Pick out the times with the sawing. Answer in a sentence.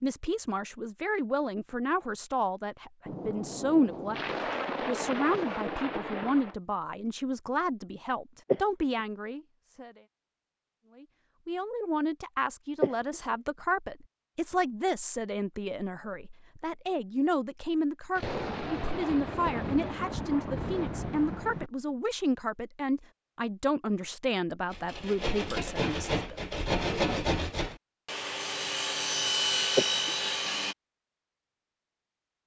The sawing can be heard from 24.7 to 30.8 s.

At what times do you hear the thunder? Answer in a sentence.
You can hear the thunder from 3.0 to 6.5 s and from 18.1 to 21.7 s.